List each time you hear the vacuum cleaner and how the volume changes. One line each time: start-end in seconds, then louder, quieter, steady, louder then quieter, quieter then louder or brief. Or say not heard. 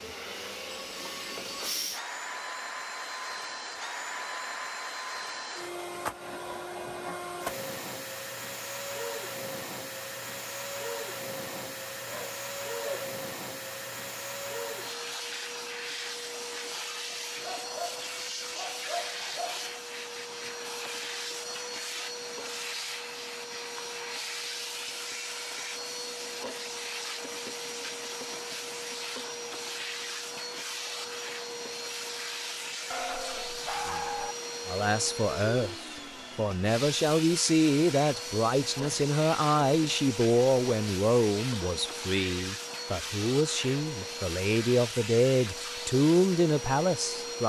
0.0-47.4 steady.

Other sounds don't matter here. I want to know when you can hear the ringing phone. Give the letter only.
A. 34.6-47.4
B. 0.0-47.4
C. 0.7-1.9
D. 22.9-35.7
C.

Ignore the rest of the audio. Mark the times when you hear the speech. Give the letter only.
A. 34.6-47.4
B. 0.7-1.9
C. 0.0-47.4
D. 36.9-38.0
A.